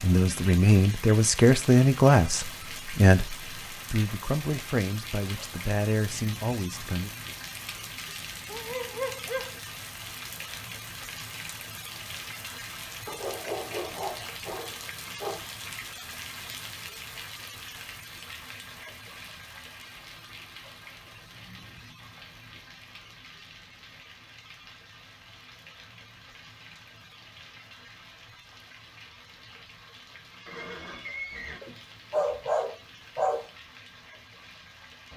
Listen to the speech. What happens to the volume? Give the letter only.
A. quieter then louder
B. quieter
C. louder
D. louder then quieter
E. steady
B.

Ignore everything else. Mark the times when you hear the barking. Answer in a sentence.
You can hear the barking from 8.4 to 9.6 s, from 13.1 to 15.4 s and from 31.6 to 33.5 s.